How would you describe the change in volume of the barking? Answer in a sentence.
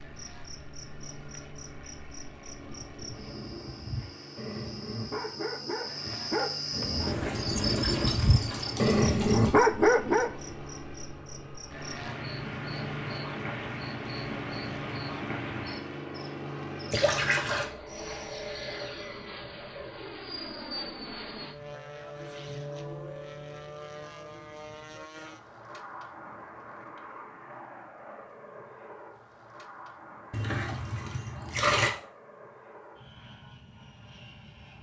The loudness of the barking goes up.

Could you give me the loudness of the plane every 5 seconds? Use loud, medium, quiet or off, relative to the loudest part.
medium, medium, loud, loud, loud, medium, medium.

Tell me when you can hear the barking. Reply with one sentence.
The barking can be heard from 2.5 to 10.3 s.